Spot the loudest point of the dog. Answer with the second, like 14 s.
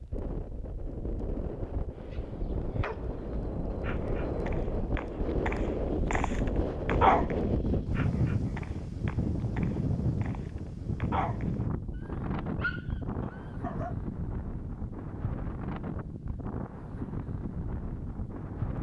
7 s.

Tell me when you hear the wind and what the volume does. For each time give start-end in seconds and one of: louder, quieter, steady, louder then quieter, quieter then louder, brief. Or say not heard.
0.0-18.7 louder then quieter.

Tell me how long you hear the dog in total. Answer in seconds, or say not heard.
12 s.